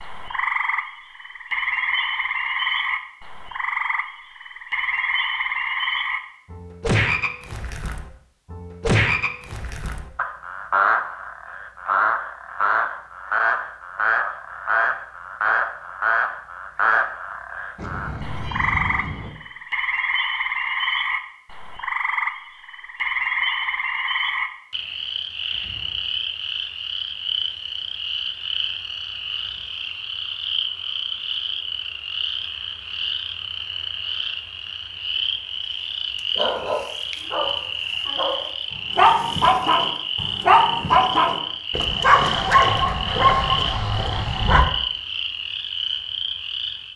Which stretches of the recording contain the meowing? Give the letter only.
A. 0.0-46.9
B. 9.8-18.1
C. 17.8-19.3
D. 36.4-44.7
C.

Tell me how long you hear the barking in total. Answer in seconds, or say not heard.
8 s.